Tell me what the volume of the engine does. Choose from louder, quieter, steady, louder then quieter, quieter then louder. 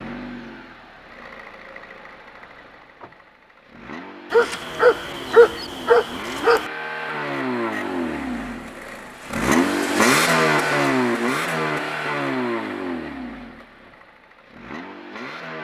louder then quieter.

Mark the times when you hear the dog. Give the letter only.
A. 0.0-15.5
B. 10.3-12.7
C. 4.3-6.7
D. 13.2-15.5
C.